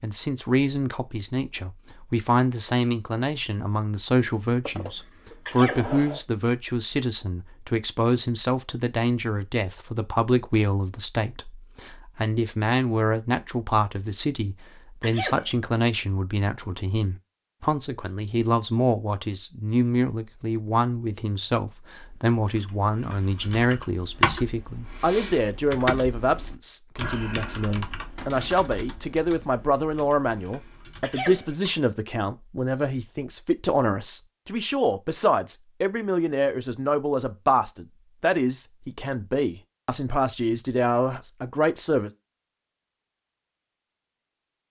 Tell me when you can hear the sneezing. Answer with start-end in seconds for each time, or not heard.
5.5-6.0, 15.0-15.6, 31.0-31.6.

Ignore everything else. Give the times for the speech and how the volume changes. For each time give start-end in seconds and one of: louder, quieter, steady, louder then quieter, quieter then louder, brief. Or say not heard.
0.0-42.1 steady.